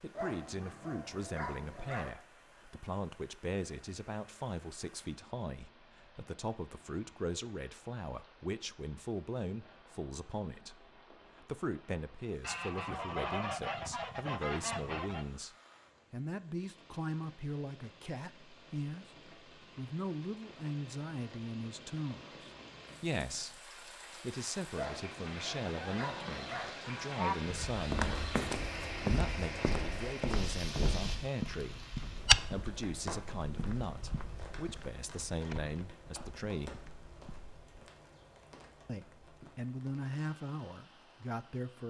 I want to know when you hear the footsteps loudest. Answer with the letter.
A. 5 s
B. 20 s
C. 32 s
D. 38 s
C.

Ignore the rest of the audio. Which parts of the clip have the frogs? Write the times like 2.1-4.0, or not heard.
not heard.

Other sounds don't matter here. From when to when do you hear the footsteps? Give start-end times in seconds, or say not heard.
27.4-37.8.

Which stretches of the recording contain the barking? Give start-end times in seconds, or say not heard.
0.1-2.1, 24.8-26.8.